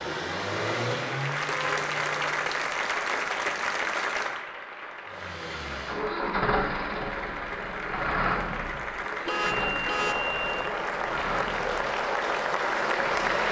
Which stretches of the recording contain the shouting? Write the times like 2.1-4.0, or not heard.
not heard.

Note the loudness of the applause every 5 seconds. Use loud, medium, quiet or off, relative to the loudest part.
loud, medium, loud.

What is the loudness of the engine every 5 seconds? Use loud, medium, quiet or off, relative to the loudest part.
loud, loud, medium.